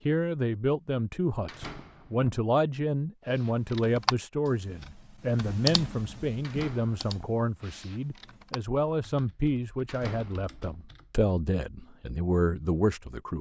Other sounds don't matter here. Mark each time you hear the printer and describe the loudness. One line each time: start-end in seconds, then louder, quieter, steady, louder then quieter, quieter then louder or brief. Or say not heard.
not heard.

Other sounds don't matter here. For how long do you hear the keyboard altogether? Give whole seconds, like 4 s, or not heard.
8 s.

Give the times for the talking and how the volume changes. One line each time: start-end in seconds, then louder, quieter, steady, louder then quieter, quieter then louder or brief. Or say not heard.
0.1-13.3 steady.